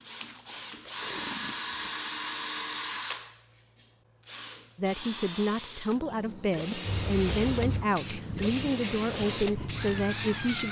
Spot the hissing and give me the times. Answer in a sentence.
You can hear the hissing from 6.8 to 10.6 s.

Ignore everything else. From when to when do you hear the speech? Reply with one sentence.
The speech can be heard from 4.8 to 10.6 s.